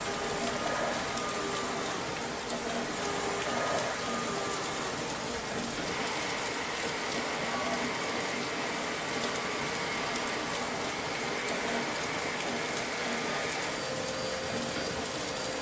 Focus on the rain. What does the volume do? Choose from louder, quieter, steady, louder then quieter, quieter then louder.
steady.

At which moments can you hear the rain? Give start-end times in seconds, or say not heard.
0.0-15.5.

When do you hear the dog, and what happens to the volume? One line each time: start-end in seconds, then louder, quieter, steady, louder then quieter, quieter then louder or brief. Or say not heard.
not heard.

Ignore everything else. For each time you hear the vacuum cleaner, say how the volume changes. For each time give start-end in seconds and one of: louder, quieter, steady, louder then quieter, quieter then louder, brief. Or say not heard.
0.0-15.5 steady.